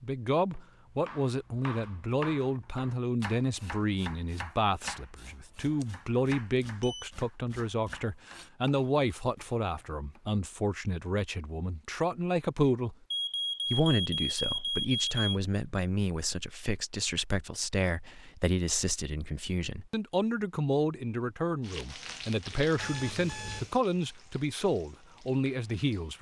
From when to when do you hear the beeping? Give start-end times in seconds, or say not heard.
5.8-7.0, 13.1-15.4, 22.8-23.8.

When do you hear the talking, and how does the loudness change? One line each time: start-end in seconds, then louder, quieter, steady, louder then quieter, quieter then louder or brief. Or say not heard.
0.0-12.9 steady
13.7-26.1 steady.